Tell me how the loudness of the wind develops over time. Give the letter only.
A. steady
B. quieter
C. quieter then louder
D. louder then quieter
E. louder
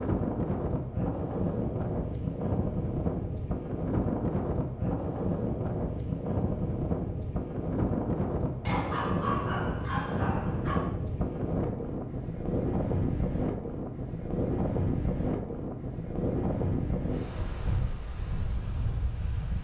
A.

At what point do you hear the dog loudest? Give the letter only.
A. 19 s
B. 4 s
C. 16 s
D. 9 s
D.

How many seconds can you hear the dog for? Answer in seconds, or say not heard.
2 s.